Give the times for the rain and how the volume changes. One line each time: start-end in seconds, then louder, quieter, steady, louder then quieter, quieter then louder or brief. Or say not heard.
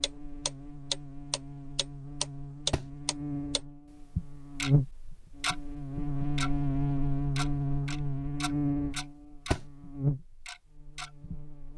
not heard.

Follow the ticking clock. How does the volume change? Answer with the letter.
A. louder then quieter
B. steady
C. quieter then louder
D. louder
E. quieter
E.